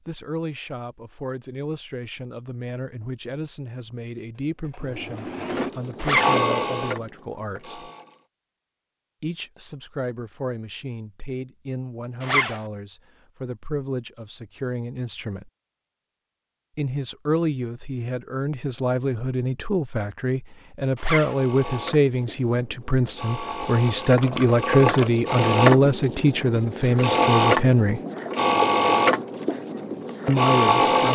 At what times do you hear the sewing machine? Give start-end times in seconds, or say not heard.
4.6-8.2, 21.2-31.1.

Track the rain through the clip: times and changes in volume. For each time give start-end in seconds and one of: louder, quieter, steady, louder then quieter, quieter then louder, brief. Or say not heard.
not heard.